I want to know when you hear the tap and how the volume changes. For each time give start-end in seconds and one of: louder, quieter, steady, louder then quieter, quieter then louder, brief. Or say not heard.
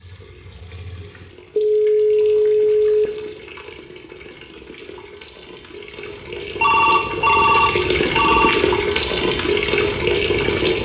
0.0-10.7 louder.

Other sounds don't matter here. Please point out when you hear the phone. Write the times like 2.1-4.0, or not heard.
1.6-3.1, 6.6-8.6.